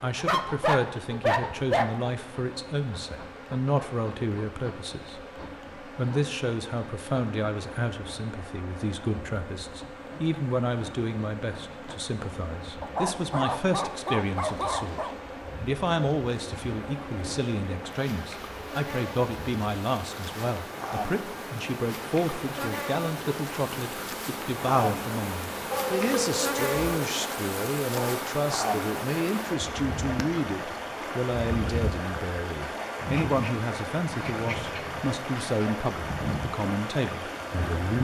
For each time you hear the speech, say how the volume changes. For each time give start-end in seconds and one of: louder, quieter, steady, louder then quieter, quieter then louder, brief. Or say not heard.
0.0-37.9 steady.